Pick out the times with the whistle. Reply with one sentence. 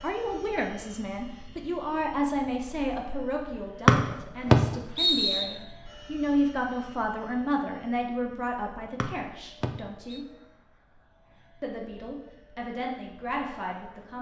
You can hear the whistle from 3.9 to 5.5 s and from 9.0 to 10.2 s.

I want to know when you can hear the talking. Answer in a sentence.
The talking can be heard from 0.0 to 10.2 s and from 11.6 to 14.1 s.